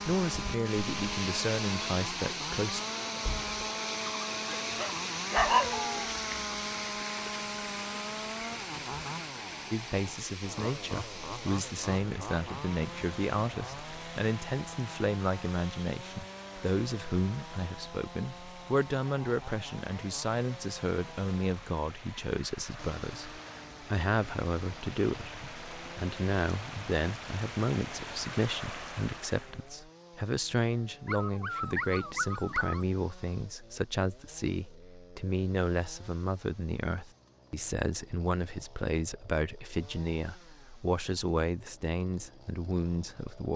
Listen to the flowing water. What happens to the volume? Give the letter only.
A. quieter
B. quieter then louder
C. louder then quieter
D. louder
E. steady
B.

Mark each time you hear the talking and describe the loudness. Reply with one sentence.
The talking can be heard briefly from 0.1 to 2.8 s; and from 9.7 to 43.5 s, at a steady volume.